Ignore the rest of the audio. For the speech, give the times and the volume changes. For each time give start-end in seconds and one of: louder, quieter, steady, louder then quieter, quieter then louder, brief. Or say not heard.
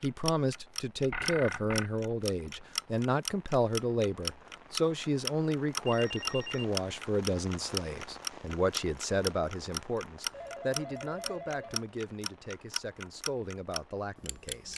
0.0-14.7 quieter.